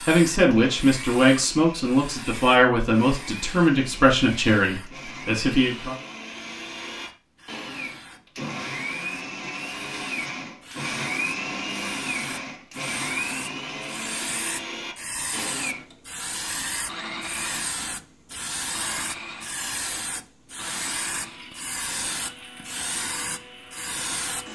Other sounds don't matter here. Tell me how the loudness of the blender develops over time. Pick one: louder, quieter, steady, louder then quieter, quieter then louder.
louder then quieter.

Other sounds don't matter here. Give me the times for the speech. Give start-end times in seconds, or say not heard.
0.1-6.0.